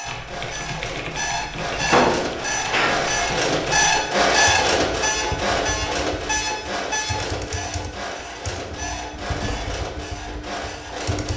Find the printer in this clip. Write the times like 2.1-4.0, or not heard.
0.0-11.3.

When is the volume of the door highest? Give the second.
2 s.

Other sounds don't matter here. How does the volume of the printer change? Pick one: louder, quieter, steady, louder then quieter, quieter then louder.
louder then quieter.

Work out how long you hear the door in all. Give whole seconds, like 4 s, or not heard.
2 s.